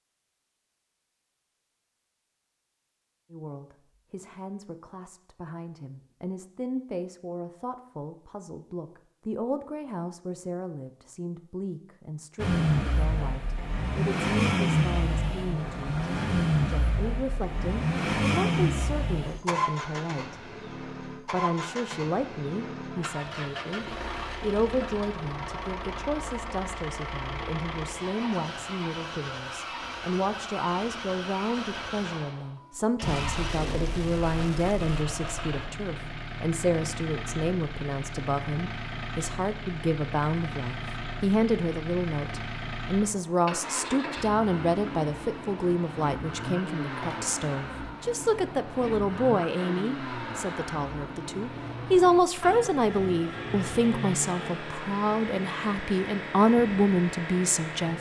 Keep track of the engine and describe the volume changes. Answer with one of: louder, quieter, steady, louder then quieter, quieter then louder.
quieter.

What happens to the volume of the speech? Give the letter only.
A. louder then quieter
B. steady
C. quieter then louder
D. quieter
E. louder
E.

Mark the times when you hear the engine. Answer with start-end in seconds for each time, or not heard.
12.3-57.9.